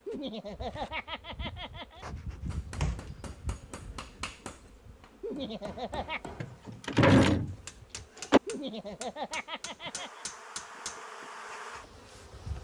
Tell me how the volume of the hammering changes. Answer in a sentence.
The loudness of the hammering goes up.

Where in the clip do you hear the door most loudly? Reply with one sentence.
The loudest moment of the door is at 7 seconds.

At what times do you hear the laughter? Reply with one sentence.
You can hear the laughter from 0.1 to 2.0 s, from 5.2 to 6.3 s and from 8.4 to 10.2 s.